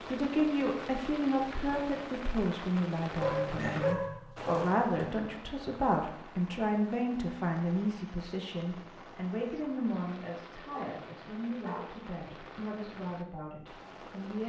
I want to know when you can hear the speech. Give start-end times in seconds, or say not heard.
0.1-14.4.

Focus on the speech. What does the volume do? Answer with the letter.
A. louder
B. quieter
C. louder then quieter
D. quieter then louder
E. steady
B.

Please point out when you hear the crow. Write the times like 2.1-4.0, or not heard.
not heard.